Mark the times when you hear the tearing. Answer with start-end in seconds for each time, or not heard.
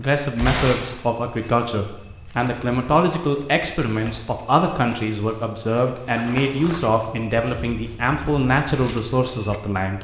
0.3-0.9, 5.8-6.2.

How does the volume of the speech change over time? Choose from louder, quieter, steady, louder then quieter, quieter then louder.
steady.